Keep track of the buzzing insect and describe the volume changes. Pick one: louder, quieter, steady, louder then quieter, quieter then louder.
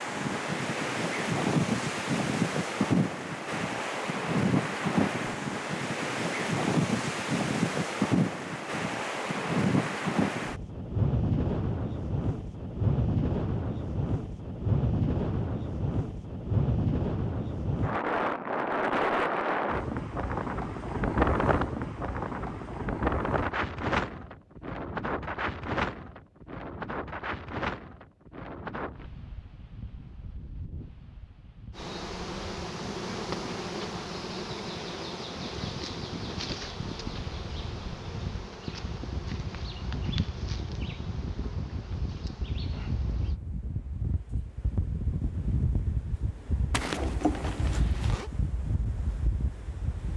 quieter.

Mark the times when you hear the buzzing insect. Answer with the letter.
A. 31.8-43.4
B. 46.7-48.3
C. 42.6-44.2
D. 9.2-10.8
A.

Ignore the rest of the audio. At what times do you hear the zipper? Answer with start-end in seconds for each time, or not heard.
46.7-48.3.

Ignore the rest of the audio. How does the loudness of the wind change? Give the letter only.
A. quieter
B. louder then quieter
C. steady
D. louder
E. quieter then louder
E.